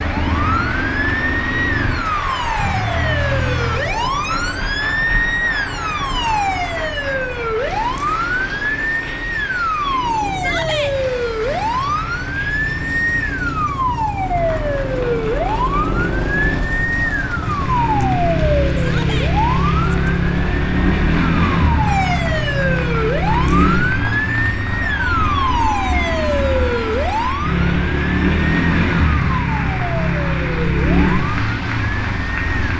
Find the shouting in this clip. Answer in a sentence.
The shouting can be heard from 10.3 to 10.9 s and from 18.8 to 19.4 s.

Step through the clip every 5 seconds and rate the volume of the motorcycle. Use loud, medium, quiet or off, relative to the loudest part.
medium, quiet, medium, loud, loud, loud, loud.